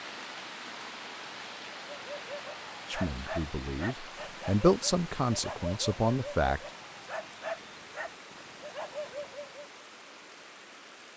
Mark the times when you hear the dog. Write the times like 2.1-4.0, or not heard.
1.9-9.7.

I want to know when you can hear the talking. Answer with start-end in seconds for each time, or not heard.
2.9-6.6.